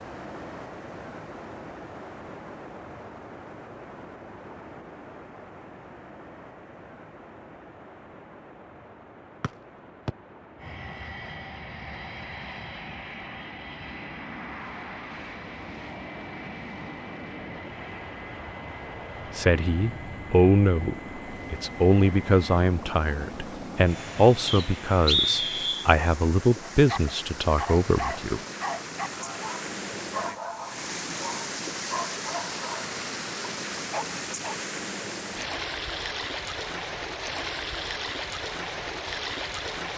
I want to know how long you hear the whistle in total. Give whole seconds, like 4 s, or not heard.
2 s.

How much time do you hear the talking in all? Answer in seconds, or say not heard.
9 s.